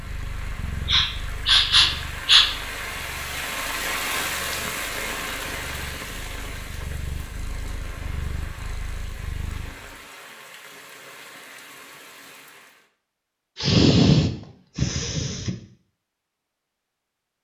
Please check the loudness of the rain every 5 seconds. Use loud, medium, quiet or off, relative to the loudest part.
loud, medium, quiet, off.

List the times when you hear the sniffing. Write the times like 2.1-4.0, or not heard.
0.8-2.5, 13.6-15.6.